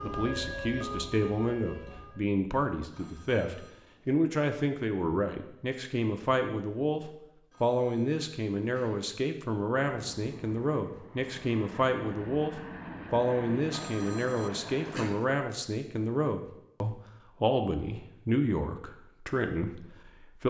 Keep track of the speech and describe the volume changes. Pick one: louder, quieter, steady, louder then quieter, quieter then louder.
steady.